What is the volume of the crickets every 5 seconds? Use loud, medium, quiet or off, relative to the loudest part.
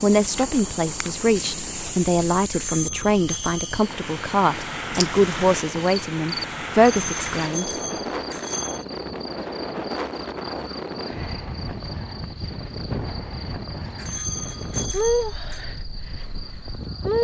medium, medium, quiet, loud.